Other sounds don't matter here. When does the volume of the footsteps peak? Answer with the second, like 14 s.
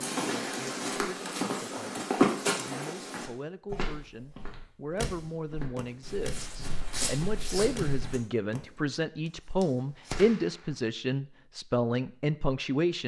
2 s.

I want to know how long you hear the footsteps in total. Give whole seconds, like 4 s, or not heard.
8 s.